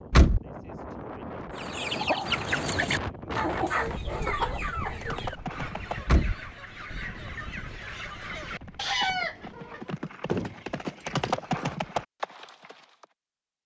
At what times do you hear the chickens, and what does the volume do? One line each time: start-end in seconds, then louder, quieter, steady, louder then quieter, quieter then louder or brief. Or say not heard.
1.6-9.8 quieter then louder.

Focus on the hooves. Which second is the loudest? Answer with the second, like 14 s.
11 s.